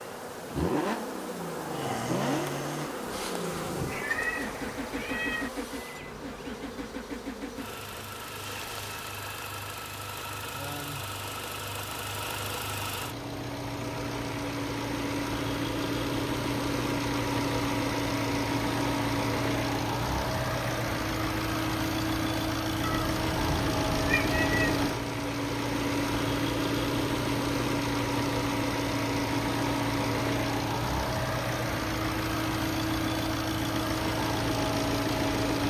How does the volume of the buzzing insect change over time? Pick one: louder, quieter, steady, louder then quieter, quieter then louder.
quieter.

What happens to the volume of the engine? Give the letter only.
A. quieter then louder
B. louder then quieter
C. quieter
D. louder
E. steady
D.